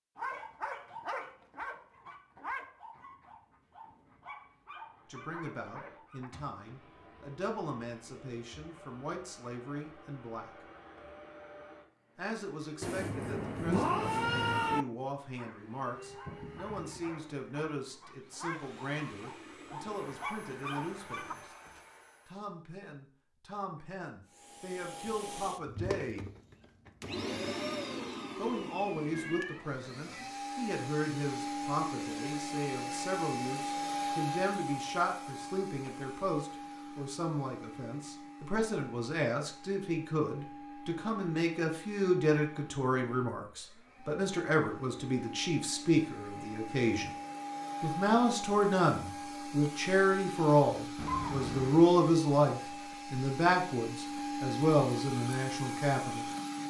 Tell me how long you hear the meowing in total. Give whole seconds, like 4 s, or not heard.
4 s.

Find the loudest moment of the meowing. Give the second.
14 s.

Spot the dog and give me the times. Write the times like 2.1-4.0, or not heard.
0.1-6.3, 15.2-21.4.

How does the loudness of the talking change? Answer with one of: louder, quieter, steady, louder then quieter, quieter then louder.
louder.